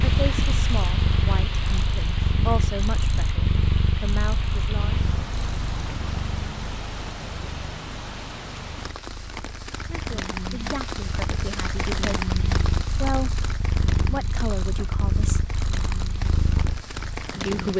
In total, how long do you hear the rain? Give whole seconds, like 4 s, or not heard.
18 s.